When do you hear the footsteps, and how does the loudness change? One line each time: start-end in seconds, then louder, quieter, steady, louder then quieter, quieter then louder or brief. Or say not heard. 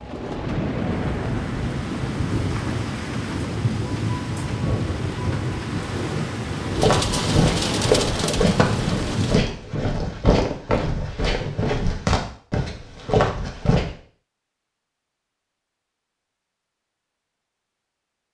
6.8-13.9 steady.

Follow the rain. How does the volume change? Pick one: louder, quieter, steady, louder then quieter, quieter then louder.
steady.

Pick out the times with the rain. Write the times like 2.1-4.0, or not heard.
0.0-9.4.